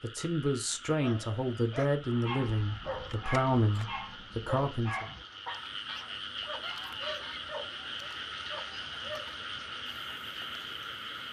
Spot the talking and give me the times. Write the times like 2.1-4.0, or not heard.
0.0-5.0.